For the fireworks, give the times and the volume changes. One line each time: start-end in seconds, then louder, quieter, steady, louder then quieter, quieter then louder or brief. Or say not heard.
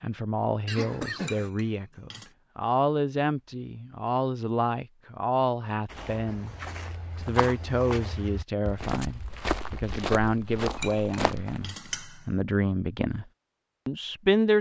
not heard.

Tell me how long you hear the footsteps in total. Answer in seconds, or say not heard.
6 s.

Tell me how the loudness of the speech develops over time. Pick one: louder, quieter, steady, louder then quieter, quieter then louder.
steady.